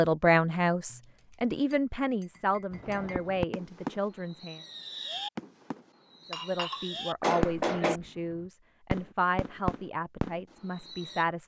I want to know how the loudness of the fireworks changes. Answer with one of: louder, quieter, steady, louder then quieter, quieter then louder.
steady.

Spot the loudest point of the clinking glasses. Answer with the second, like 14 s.
8 s.